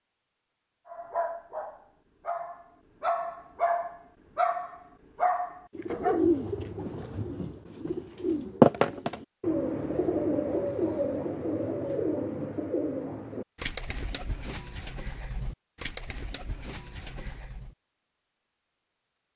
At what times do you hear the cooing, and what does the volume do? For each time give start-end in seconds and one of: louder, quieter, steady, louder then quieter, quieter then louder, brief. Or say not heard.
5.8-17.8 louder then quieter.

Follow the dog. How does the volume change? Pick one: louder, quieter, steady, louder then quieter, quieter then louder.
louder.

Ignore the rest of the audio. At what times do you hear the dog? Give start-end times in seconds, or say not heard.
0.8-6.3.